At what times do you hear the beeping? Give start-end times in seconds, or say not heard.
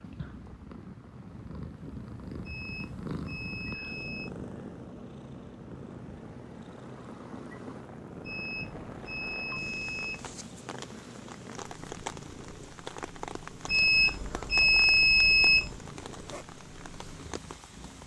2.5-4.3, 8.2-10.3, 13.7-15.8.